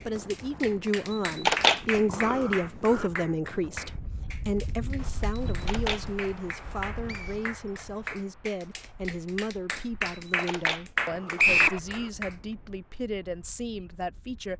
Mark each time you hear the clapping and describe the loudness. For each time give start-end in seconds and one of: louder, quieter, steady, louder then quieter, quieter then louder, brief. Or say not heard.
0.3-12.3 quieter then louder.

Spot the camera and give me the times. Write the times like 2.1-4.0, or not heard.
1.1-3.1, 5.5-6.0, 10.2-12.1.